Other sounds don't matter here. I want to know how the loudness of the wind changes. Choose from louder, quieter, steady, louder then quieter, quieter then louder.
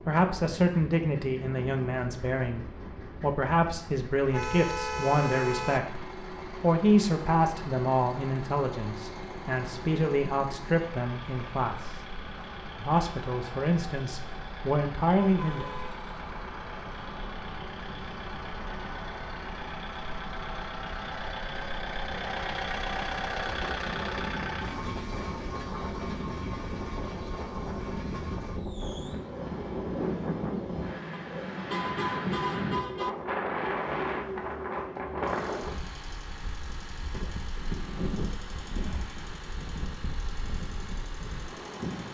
louder.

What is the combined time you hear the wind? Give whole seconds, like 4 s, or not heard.
42 s.